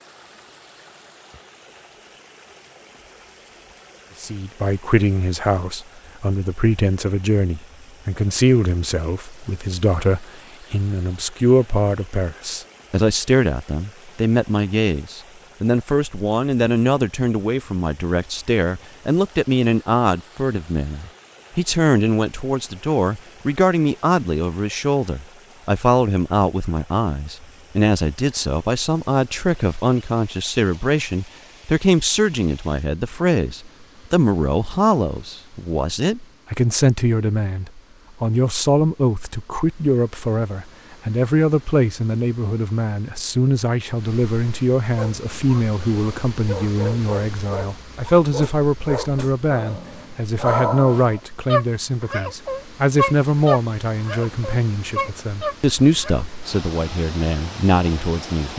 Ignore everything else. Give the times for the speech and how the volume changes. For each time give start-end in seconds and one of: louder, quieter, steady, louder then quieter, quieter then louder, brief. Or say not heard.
4.2-58.5 steady.